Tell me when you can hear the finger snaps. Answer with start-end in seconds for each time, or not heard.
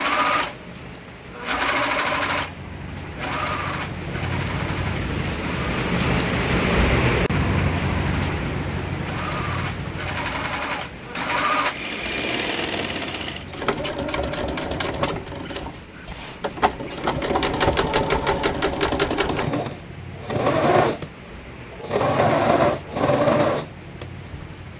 not heard.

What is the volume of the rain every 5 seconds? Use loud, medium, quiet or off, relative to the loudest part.
medium, loud, quiet, quiet, quiet.